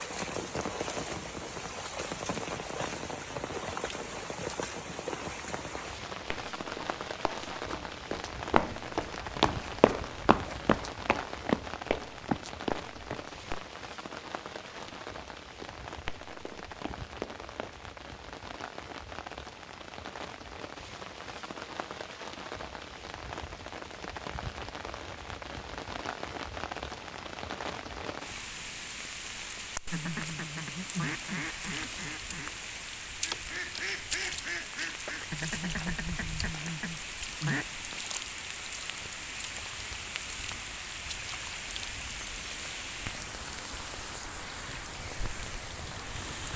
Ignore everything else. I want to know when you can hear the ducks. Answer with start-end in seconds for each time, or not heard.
29.9-37.7.